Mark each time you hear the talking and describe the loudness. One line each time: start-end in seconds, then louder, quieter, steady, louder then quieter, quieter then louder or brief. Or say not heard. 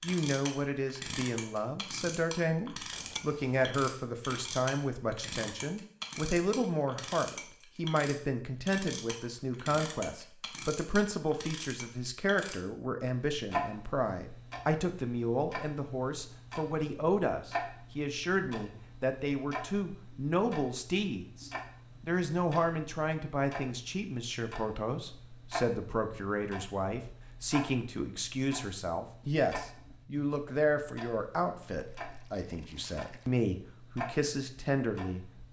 0.0-35.4 steady.